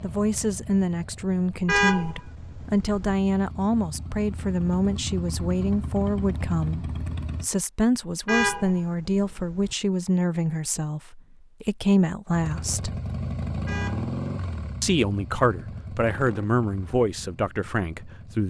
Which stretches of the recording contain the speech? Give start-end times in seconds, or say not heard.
0.0-12.9, 14.8-18.4.